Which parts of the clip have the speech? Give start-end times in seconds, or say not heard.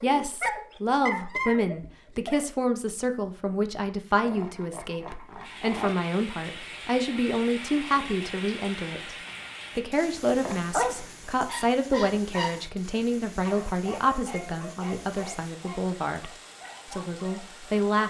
0.0-9.2, 9.8-16.3, 16.9-18.0.